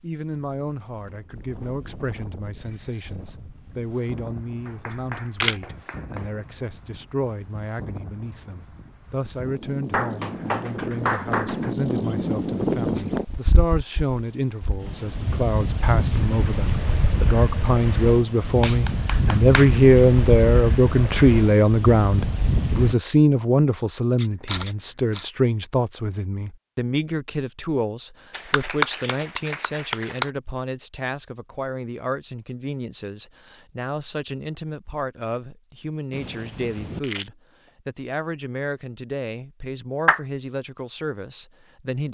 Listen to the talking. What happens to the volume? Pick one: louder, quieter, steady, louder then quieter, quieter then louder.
louder then quieter.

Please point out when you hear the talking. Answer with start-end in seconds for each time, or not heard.
0.0-42.0.